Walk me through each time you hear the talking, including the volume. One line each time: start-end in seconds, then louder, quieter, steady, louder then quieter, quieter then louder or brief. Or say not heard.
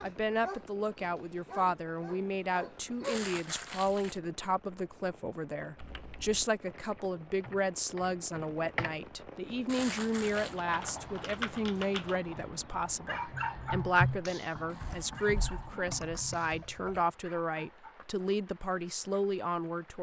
0.0-19.9 steady.